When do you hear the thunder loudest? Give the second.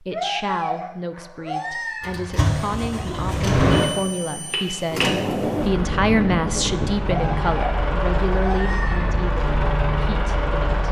6 s.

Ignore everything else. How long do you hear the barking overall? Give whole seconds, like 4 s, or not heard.
4 s.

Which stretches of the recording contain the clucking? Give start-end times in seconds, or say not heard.
not heard.